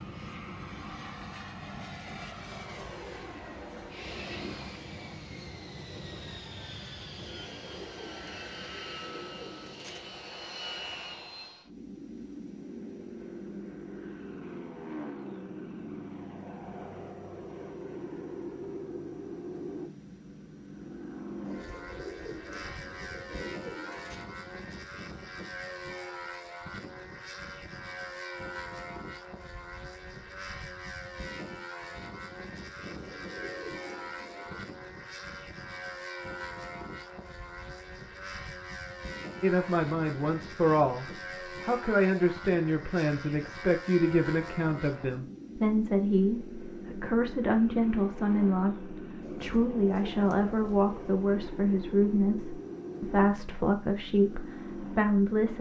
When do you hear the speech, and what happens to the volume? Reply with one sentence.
You can hear the speech from 39.4 to 55.5 s, at a steady volume.